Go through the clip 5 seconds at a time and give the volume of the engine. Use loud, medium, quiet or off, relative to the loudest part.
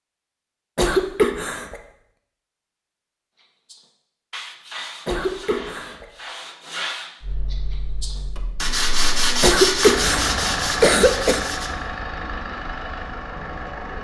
off, medium, loud.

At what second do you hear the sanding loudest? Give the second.
10 s.